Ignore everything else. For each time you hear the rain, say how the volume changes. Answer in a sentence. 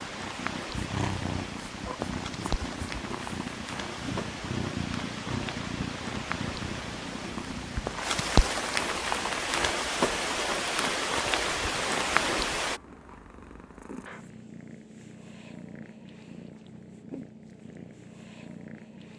You can hear the rain from 0.0 to 12.8 s, getting louder.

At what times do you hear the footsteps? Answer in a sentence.
You can't hear the footsteps here.